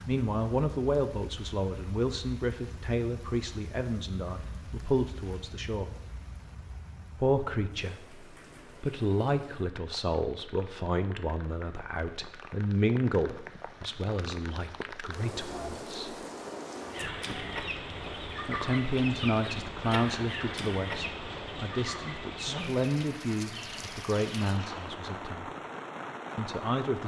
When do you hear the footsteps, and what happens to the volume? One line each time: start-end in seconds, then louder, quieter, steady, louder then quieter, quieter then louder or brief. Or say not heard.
not heard.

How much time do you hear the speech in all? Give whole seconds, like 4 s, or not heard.
22 s.